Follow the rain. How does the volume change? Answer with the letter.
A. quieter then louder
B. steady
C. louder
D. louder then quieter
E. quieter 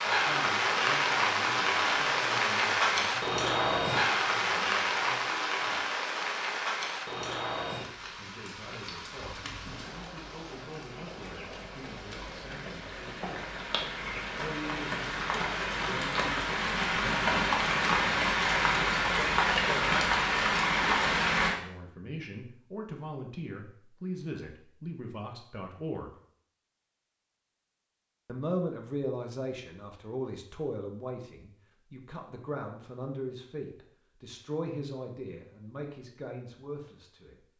A.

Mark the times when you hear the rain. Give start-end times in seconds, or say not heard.
0.0-21.6.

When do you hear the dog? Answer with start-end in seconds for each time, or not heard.
not heard.